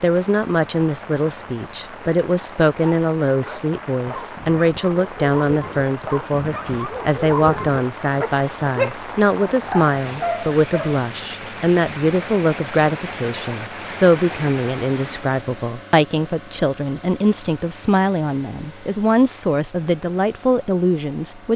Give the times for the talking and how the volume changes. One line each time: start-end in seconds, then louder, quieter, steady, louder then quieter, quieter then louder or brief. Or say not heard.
0.0-21.5 steady.